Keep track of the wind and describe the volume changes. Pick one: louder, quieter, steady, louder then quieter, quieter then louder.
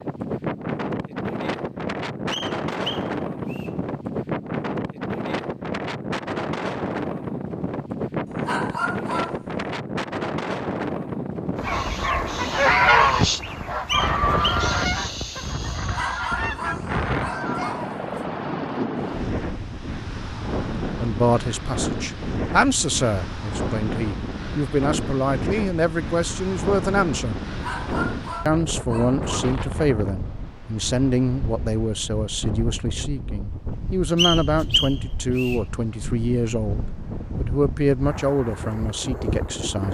quieter.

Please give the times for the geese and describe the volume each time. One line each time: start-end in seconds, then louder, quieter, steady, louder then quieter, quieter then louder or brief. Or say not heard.
11.6-17.9 quieter.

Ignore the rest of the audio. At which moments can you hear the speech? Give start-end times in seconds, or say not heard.
21.0-27.4, 28.4-39.8.